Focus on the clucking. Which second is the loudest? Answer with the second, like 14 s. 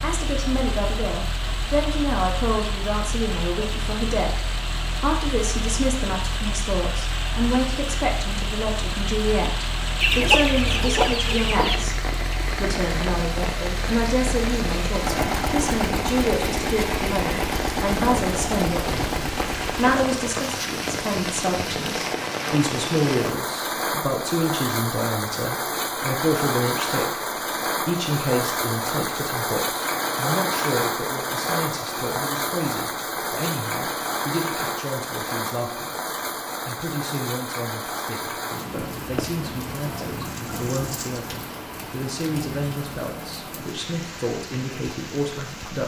10 s.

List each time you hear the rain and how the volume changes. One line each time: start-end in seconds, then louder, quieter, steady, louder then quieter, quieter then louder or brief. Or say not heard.
0.0-45.8 louder then quieter.